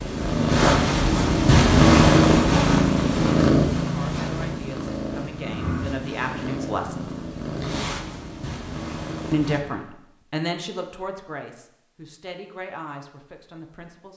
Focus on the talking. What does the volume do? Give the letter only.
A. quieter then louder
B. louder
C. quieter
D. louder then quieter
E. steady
D.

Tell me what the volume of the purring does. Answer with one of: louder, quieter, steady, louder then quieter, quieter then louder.
quieter.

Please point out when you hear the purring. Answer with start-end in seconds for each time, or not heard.
0.0-9.6.